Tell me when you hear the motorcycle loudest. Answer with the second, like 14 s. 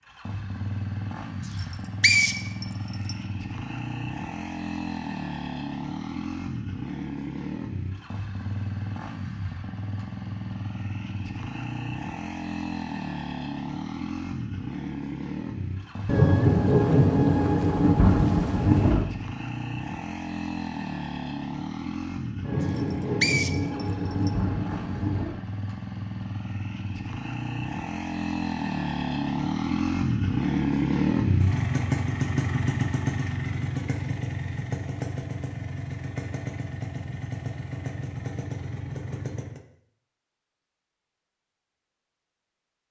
31 s.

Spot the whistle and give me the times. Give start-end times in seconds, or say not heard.
1.5-3.1, 22.6-24.3.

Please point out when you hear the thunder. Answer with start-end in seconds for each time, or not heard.
16.1-19.1, 22.4-25.4.